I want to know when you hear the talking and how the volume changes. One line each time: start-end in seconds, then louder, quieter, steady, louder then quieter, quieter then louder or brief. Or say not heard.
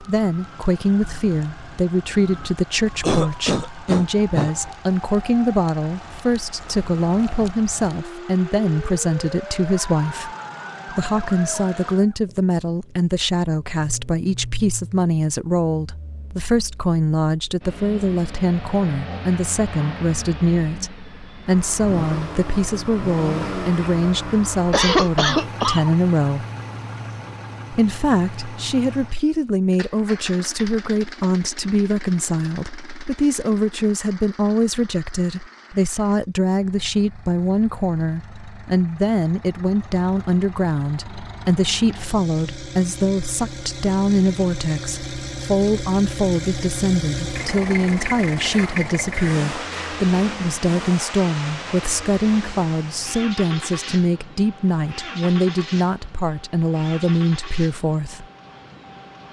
0.0-26.4 steady
27.7-58.2 steady.